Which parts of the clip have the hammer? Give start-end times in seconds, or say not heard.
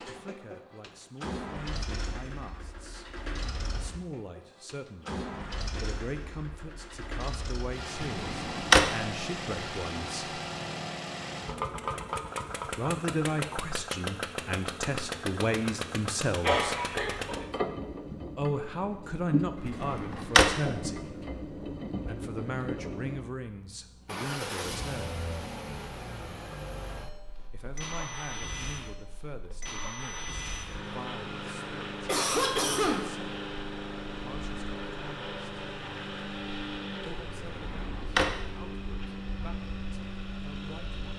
not heard.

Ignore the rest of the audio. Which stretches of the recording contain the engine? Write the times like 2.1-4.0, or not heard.
0.0-41.1.